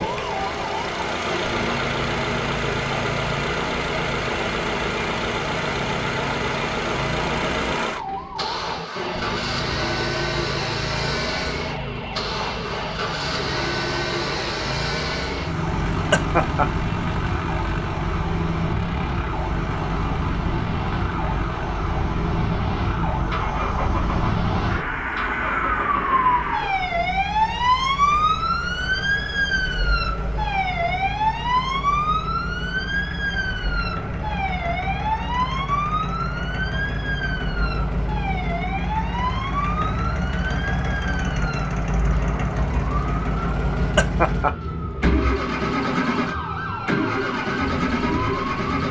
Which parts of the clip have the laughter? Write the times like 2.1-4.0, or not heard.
16.1-16.7, 44.0-44.5.